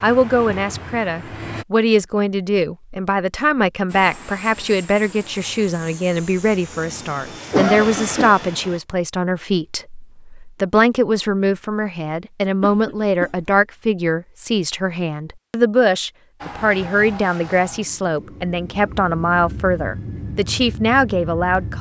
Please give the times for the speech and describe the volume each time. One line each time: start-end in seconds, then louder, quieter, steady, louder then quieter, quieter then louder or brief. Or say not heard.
0.0-21.7 steady.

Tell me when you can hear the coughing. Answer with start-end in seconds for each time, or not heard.
7.5-8.3, 12.6-13.5.